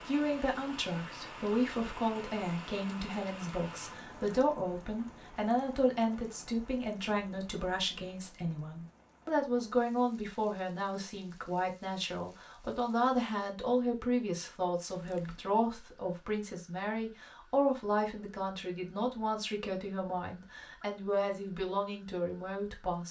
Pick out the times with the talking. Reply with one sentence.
The talking can be heard from 0.1 to 23.0 s.